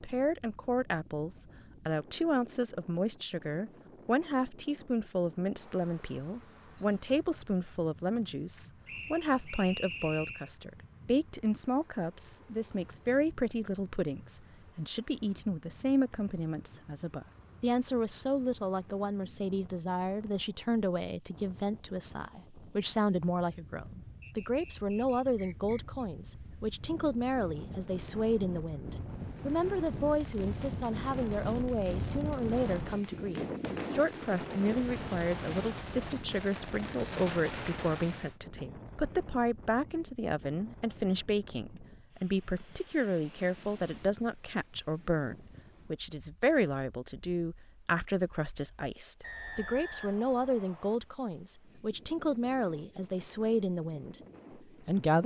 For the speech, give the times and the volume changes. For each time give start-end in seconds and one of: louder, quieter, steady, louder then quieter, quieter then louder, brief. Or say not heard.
0.0-55.2 steady.